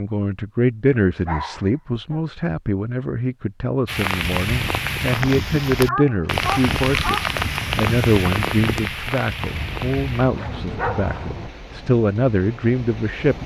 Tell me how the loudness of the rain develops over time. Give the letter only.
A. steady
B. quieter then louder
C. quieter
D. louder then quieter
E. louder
C.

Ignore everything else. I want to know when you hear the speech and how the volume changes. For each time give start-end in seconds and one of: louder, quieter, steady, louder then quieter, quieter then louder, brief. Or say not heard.
0.0-13.3 steady.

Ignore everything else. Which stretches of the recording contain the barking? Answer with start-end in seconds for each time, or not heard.
1.2-2.2, 5.7-7.3, 9.4-11.5.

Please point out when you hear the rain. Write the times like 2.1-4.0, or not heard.
3.9-13.4.